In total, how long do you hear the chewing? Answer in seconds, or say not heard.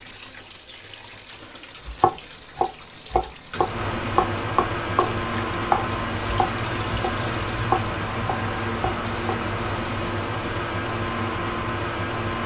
not heard.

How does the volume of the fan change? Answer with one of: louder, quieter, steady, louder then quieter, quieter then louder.
steady.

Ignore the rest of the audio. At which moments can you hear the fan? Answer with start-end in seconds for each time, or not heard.
3.5-12.4.